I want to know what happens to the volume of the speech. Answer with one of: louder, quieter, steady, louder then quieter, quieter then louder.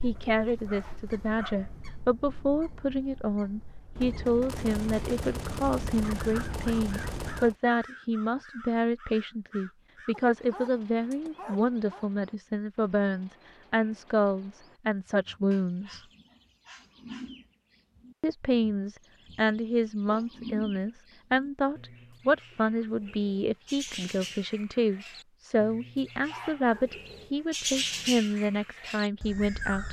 steady.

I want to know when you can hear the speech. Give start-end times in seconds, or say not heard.
0.0-16.0, 18.2-29.8.